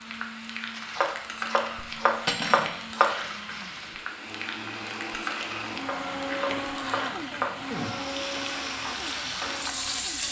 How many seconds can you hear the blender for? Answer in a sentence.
You can hear the blender for 10 seconds altogether.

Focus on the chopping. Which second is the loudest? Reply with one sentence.
The volume of the chopping peaks at 3 seconds.